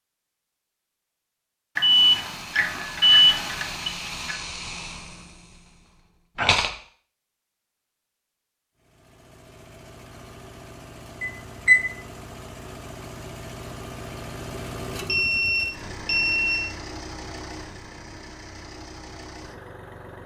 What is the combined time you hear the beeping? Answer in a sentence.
The beeping can be heard for 5 seconds in total.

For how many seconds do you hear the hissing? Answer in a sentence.
You can hear the hissing for 5 seconds altogether.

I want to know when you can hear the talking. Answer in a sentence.
The talking can't be heard in this clip.